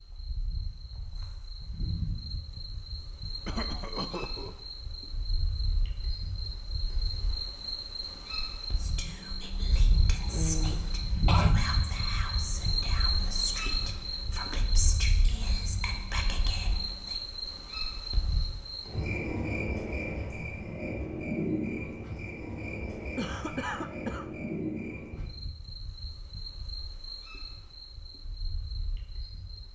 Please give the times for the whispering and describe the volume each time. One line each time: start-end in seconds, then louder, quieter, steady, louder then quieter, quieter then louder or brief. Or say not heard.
8.8-17.1 steady.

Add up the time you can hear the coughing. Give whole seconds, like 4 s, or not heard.
4 s.